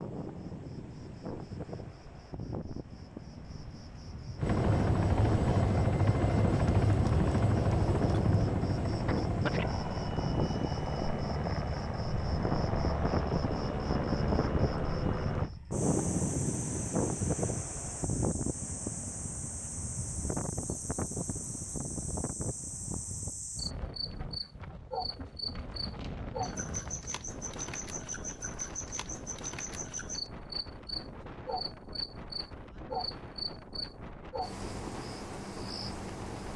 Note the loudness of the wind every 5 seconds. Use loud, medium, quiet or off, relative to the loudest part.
medium, loud, loud, loud, medium, medium, quiet, quiet.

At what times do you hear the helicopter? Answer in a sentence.
You can hear the helicopter from 4.3 to 15.5 s.